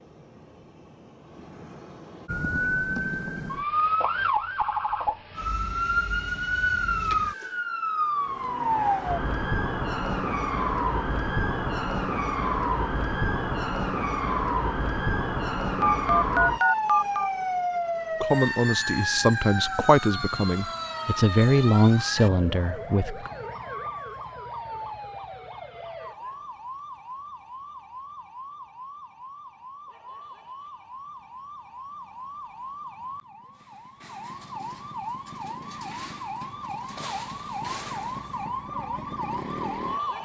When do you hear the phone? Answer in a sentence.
The phone can be heard from 15.8 to 17.3 s.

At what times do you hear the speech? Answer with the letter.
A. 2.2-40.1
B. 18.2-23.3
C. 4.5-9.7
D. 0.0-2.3
B.